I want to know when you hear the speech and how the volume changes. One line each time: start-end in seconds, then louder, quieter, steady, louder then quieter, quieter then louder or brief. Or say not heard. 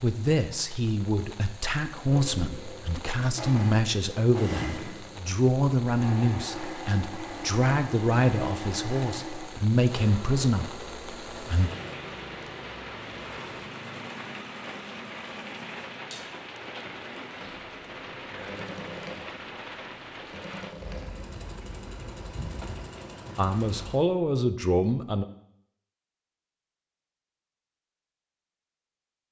0.0-11.7 steady
23.4-25.2 brief.